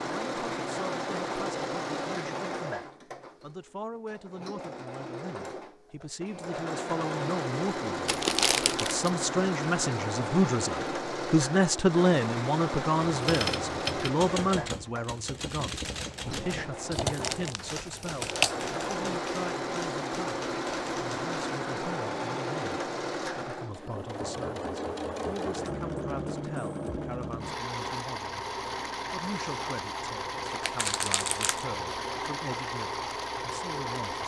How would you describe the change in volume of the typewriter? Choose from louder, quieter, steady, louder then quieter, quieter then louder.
quieter.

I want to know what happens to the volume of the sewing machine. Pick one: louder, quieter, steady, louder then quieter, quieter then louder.
steady.